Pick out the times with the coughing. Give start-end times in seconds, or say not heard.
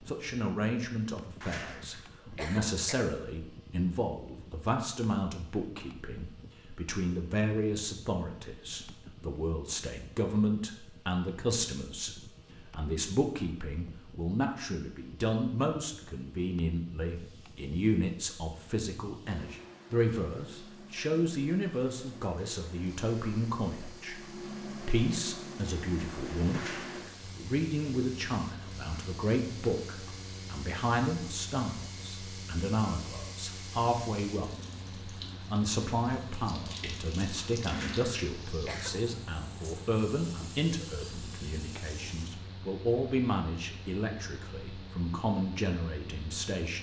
1.4-3.0, 26.5-27.1, 37.6-39.0.